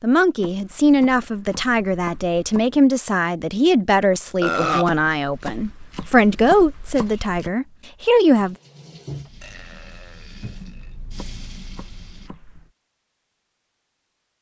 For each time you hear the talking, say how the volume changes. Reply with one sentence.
You can hear the talking from 0.0 to 8.6 s, at a steady volume.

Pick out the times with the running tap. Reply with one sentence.
The running tap can be heard from 8.3 to 12.3 s.